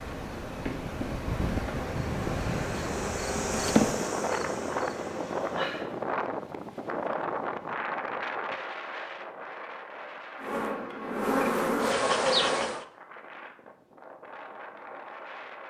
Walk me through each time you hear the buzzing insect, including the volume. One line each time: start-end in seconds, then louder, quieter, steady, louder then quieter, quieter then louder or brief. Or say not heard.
0.1-5.9 louder then quieter
10.4-12.8 brief.